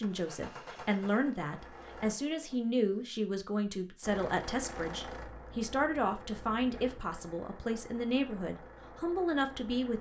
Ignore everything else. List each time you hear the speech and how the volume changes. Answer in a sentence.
You can hear the speech from 0.0 to 9.9 s, at a steady volume.